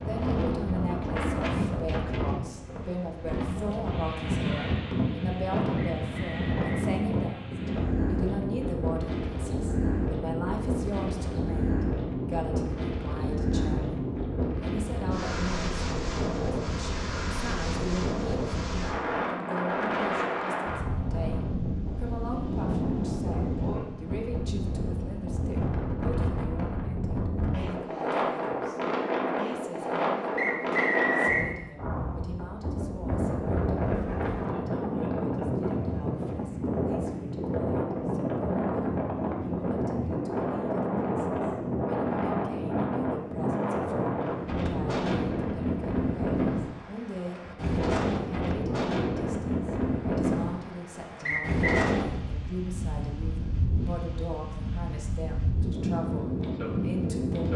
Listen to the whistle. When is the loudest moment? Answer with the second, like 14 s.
31 s.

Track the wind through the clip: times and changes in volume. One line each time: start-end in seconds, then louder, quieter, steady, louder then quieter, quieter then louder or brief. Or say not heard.
0.0-57.5 steady.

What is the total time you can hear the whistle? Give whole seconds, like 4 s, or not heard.
3 s.